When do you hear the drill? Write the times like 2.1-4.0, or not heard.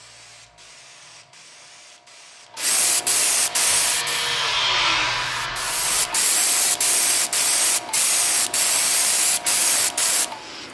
3.4-6.2.